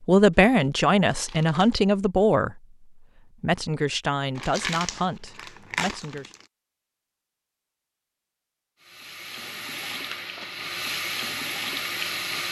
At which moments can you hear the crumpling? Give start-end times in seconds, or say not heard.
0.3-1.8, 4.3-6.5, 10.1-10.7.